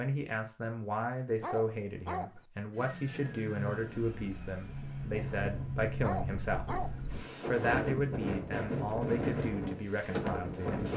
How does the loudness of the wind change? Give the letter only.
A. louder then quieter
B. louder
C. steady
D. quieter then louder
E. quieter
B.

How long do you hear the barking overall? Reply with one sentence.
The barking can be heard for 2 seconds in total.